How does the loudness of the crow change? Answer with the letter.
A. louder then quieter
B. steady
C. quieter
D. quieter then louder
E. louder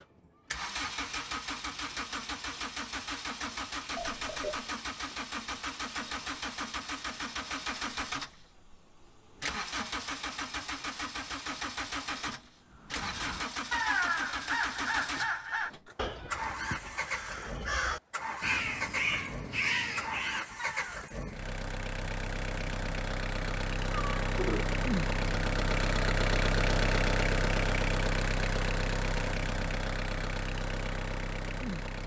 D.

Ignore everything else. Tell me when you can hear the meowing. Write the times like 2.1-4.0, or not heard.
4.0-4.7, 16.0-16.9, 23.9-24.6.